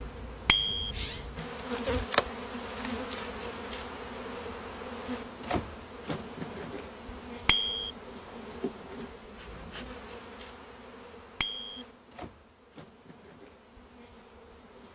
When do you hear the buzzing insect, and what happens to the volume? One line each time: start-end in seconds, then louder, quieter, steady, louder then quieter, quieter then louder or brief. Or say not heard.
0.0-14.9 quieter.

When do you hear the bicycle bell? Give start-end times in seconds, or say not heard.
0.5-0.9, 7.5-7.9, 11.4-11.8.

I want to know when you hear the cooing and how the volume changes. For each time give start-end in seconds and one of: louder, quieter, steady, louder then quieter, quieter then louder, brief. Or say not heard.
not heard.